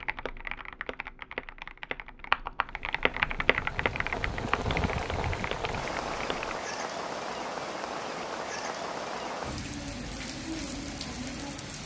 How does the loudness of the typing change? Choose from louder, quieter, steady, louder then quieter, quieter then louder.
louder then quieter.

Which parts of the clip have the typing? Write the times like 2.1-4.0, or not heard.
0.0-6.6.